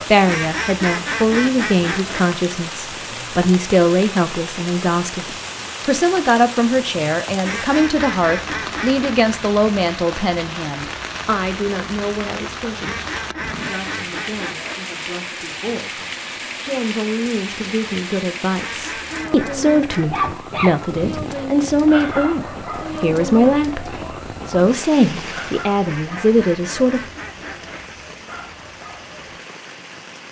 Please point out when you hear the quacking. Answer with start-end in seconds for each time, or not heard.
0.2-2.2, 7.4-9.2, 12.8-14.8, 18.6-20.4, 25.8-27.8.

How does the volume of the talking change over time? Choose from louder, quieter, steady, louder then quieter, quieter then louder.
quieter then louder.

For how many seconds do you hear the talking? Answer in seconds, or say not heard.
26 s.